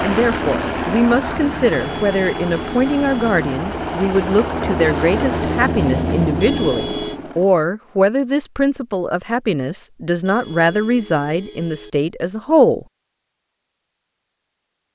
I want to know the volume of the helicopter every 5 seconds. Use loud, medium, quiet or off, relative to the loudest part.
loud, loud, off.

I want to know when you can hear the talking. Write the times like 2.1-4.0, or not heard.
0.0-12.8.